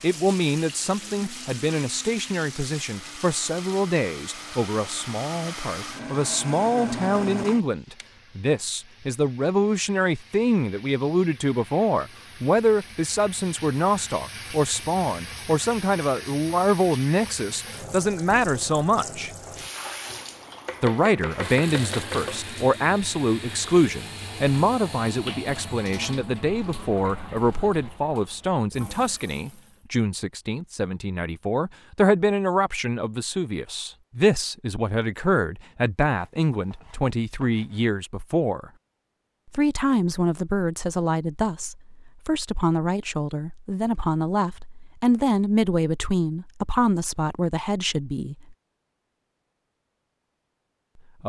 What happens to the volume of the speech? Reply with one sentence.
The loudness of the speech stays about the same.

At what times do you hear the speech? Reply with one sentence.
The speech can be heard from 0.0 to 19.3 s, from 20.8 to 38.7 s and from 39.5 to 48.5 s.